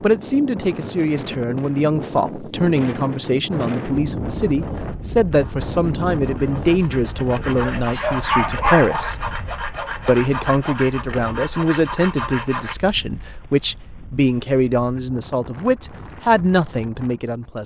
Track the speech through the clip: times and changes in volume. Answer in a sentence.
You can hear the speech from 0.0 to 9.2 s, at a steady volume; and from 10.1 to 17.6 s, at a steady volume.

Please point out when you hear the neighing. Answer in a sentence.
You can't hear the neighing here.